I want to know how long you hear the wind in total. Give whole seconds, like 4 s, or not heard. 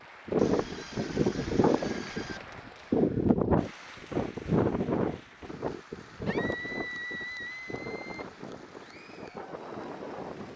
10 s.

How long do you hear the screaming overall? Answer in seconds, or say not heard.
4 s.